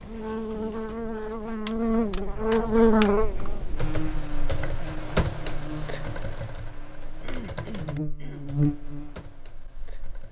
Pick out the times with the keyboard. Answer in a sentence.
The keyboard can be heard from 0.0 to 1.1 s and from 1.6 to 10.2 s.